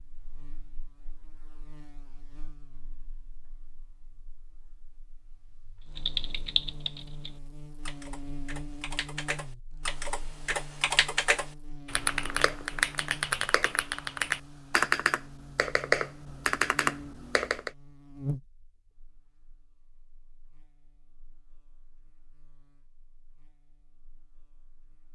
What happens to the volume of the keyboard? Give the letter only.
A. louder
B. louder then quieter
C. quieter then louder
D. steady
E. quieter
A.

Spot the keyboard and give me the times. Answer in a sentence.
The keyboard can be heard from 6.0 to 17.7 s.